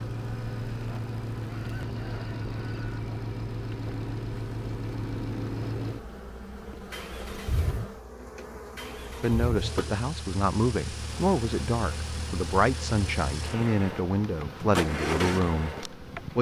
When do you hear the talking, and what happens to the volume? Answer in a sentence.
You can hear the talking from 9.2 to 16.3 s, at a steady volume.